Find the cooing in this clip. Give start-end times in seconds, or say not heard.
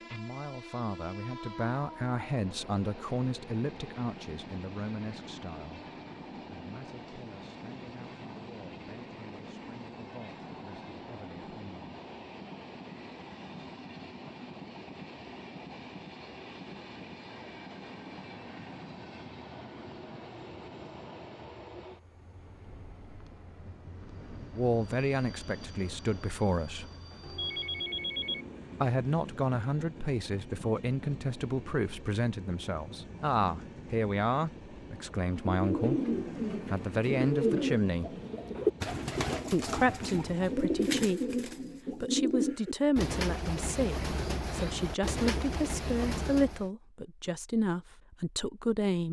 35.5-46.7.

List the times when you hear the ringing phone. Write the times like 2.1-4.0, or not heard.
27.2-28.9.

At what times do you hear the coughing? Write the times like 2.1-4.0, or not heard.
not heard.